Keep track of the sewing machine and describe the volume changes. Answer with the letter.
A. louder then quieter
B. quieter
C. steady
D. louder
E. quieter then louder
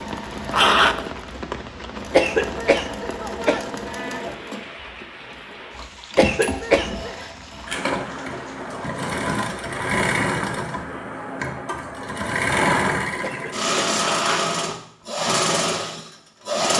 D.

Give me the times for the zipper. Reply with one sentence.
You can hear the zipper from 0.5 to 1.1 s and from 13.9 to 14.5 s.